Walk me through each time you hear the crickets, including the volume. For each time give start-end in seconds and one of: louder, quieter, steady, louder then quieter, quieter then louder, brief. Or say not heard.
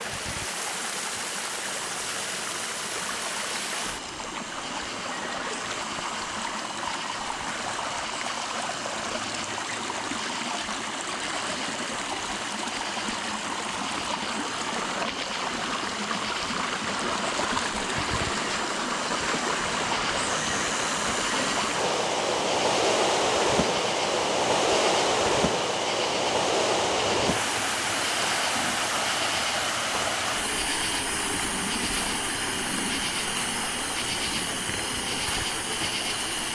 0.0-36.4 louder.